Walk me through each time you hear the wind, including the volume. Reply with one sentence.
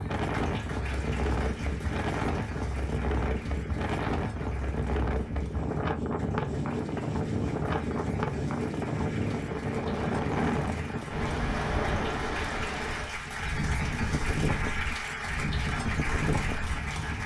The wind can be heard from 0.0 to 17.2 s, at a steady volume.